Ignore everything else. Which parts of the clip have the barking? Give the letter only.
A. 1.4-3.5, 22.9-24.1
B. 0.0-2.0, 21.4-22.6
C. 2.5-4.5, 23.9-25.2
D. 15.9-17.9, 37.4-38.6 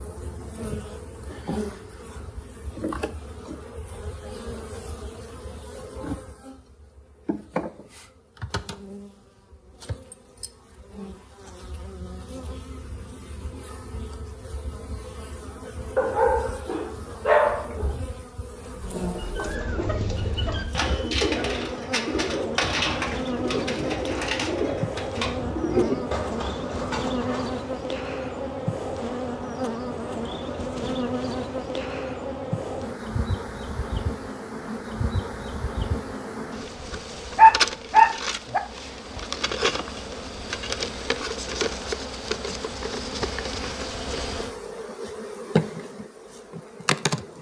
D.